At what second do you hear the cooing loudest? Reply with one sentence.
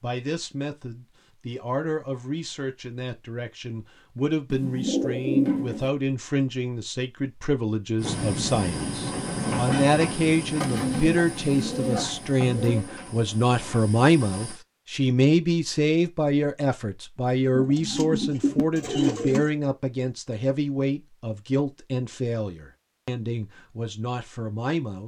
The loudest moment of the cooing is at 5 seconds.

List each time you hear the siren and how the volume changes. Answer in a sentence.
The siren can't be heard in this clip.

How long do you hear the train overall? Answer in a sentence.
You can hear the train for 7 seconds altogether.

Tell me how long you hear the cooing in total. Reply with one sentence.
The cooing can be heard for 6 seconds in total.